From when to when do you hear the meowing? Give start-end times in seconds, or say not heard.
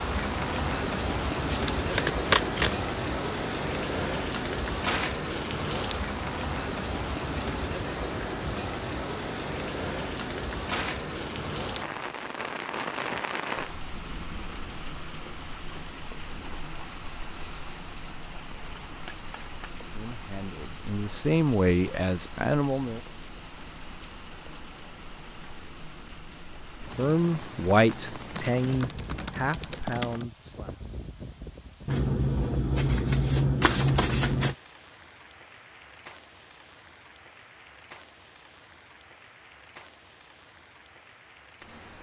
not heard.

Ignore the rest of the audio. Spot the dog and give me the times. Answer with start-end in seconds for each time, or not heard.
not heard.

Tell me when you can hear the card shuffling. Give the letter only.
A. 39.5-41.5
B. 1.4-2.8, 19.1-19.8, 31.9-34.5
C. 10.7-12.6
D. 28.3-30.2
B.